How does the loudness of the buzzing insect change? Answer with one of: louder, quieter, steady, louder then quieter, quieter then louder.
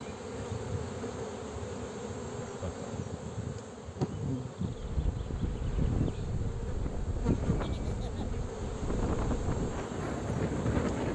steady.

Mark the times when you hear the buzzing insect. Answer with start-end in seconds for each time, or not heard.
0.0-11.0.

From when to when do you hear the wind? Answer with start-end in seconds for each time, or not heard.
4.7-11.0.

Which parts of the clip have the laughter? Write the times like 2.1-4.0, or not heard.
2.4-2.9, 7.5-8.4.